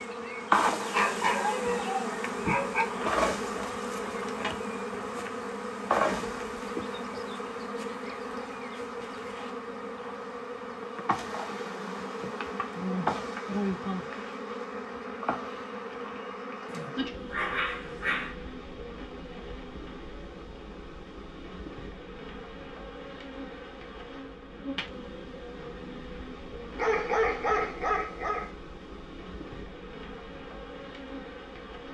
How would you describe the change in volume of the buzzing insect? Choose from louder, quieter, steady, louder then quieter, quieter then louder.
quieter.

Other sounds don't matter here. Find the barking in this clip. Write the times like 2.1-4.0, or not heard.
0.9-2.9, 16.6-18.4, 26.8-28.5.